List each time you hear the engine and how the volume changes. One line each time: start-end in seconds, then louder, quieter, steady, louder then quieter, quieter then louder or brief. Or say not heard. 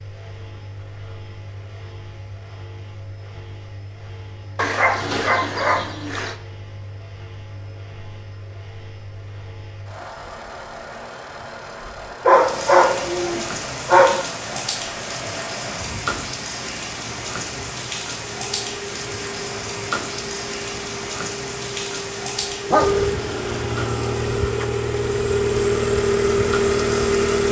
0.0-27.4 louder.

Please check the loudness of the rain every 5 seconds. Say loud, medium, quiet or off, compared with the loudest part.
off, off, loud, loud, loud, loud.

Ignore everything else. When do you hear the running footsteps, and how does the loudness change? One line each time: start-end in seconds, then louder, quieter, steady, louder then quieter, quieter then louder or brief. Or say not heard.
not heard.